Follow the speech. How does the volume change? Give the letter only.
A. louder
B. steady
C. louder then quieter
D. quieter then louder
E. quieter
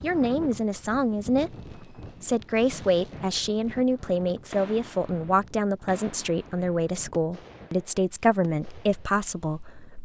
B.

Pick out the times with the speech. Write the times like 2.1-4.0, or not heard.
0.0-9.9.